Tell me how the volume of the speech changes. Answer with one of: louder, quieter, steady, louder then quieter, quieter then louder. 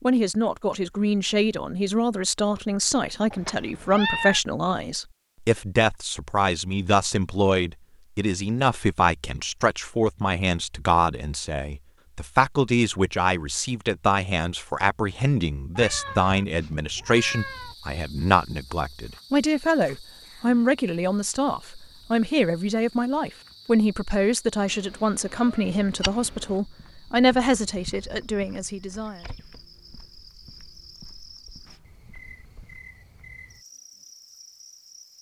steady.